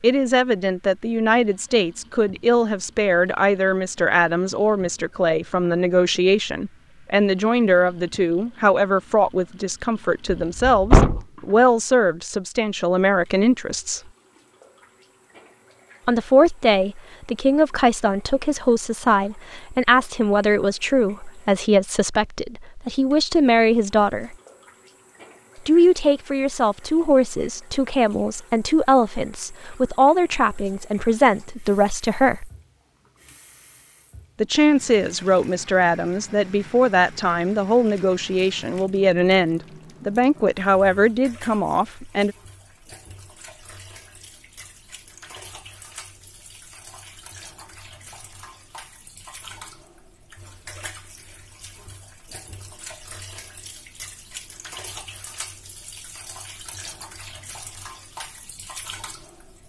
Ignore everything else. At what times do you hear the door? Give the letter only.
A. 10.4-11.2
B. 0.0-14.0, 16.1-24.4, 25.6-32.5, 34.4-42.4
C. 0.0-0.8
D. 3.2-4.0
A.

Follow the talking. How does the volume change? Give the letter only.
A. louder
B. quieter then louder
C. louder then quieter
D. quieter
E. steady
E.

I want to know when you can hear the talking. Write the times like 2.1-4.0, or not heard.
0.0-14.0, 16.1-24.4, 25.6-32.5, 34.4-42.4.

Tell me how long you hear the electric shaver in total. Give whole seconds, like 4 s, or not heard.
not heard.